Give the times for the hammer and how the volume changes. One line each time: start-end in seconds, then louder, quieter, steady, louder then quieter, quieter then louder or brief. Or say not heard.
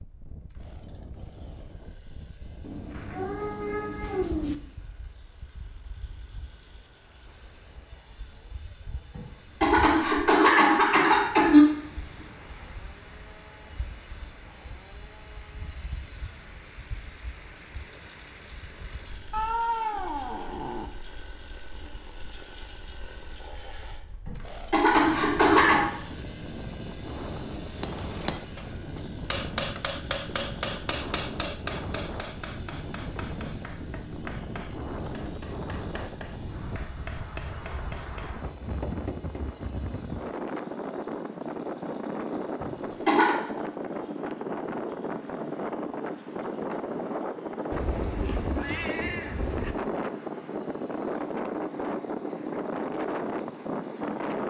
27.7-39.5 quieter then louder.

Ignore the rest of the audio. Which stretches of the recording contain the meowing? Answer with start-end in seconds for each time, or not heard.
2.6-4.5, 19.3-20.9, 47.7-49.8.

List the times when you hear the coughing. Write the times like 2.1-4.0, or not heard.
9.2-11.8, 24.2-25.9, 42.6-43.4.